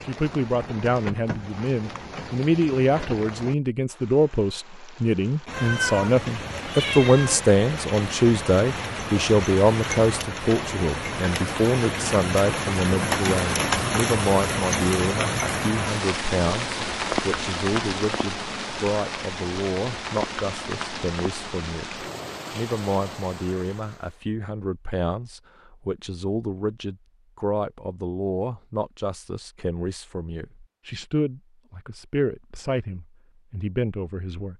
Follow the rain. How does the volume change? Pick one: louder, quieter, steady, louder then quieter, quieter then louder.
louder then quieter.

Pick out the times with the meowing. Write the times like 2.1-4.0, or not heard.
5.5-7.4.